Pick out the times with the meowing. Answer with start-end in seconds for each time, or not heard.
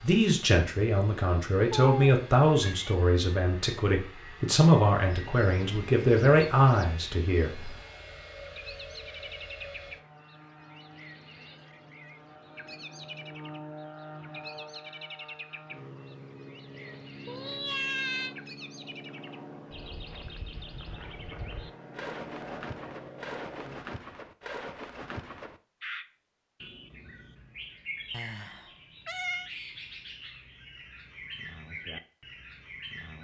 1.7-3.0, 17.2-18.4, 28.1-29.5.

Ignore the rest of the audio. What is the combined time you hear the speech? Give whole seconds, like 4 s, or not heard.
8 s.